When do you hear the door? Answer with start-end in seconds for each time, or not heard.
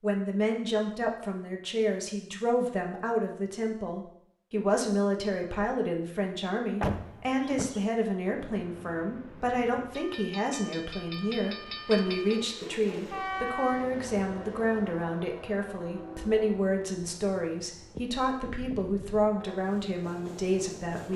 6.8-7.8.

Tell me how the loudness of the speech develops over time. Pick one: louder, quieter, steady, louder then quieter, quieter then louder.
steady.